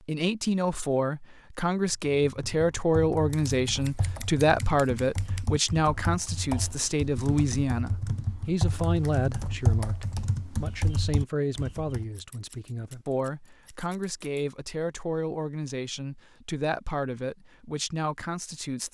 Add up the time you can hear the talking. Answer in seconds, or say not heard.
19 s.